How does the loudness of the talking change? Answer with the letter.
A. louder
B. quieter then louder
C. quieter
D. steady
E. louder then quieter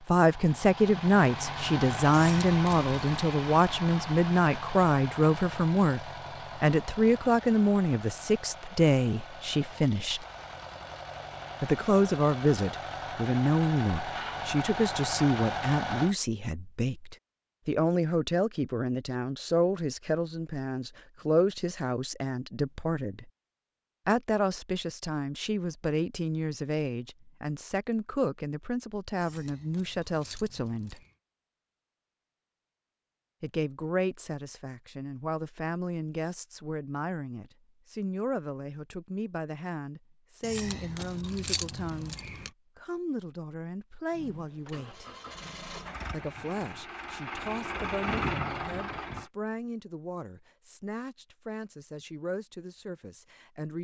C.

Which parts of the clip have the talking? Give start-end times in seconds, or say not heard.
0.1-10.2, 11.6-23.3, 24.1-31.0, 33.4-45.0, 46.1-53.7.